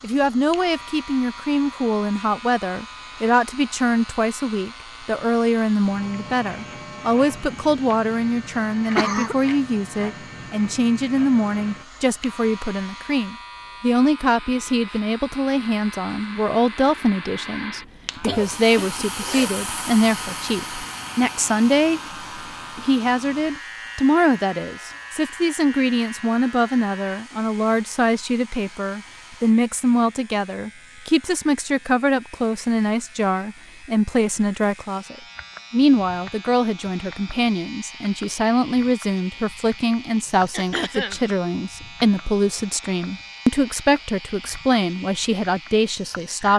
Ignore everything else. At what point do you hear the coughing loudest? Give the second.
9 s.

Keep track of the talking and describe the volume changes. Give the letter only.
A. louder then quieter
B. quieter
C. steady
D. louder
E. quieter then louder
C.